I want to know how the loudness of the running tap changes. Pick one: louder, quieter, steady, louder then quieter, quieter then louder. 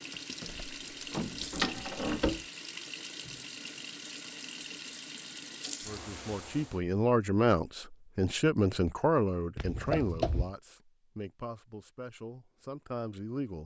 steady.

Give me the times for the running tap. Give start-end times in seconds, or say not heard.
0.0-6.8.